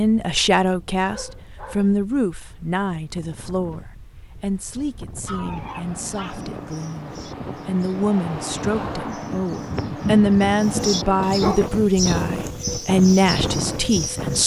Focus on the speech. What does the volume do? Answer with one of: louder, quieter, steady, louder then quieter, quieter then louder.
quieter then louder.